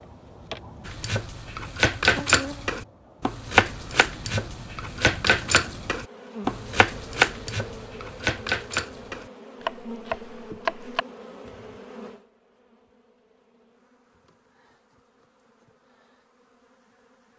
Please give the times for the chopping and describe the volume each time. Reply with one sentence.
You can hear the chopping from 0.8 to 11.1 s, getting quieter.